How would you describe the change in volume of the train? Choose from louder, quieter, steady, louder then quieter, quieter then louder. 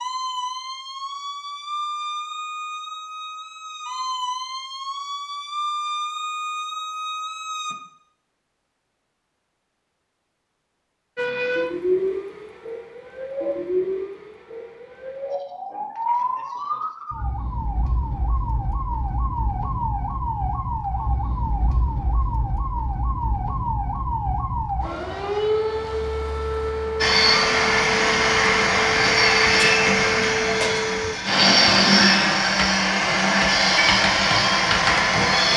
steady.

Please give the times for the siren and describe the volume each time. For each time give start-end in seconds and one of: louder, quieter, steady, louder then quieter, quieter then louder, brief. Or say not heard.
0.0-7.8 steady
11.2-31.1 steady.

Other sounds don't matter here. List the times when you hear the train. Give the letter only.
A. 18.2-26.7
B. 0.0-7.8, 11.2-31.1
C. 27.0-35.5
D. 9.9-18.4
C.